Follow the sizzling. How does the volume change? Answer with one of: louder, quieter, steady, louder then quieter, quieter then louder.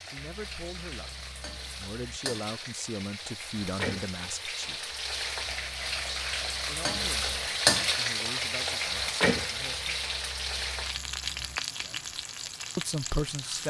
louder then quieter.